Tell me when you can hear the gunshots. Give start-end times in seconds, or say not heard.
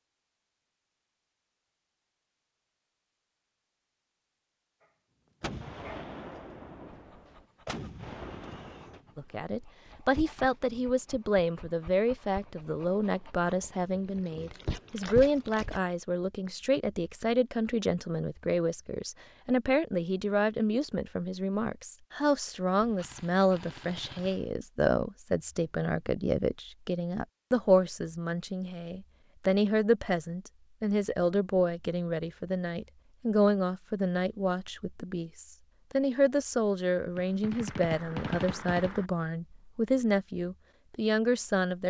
5.4-9.1, 22.8-24.5, 37.1-39.1.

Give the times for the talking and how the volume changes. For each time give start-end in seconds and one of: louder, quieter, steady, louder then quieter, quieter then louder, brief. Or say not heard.
9.2-41.8 steady.